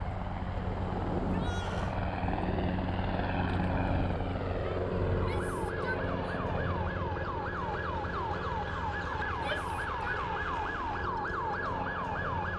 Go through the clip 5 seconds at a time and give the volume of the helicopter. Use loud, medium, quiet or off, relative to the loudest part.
loud, loud, medium.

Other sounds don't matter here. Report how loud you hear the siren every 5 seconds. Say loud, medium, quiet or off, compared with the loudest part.
off, loud, loud.